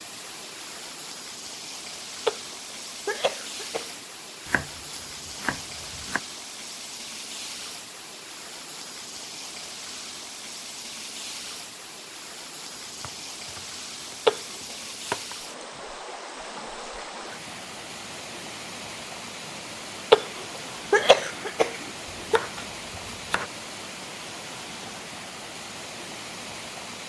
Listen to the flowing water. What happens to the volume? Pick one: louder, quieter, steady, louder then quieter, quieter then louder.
steady.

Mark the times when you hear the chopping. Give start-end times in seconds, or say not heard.
4.5-6.2, 12.9-15.3, 22.1-23.5.